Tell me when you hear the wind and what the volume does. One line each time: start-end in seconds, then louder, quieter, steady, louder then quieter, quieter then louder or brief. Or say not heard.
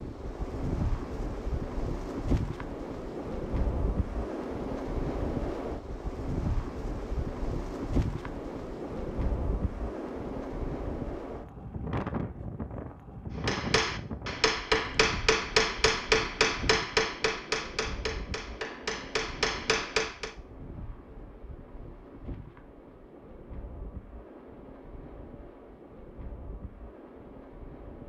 0.0-28.0 quieter.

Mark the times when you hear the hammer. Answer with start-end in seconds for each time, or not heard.
13.4-20.3.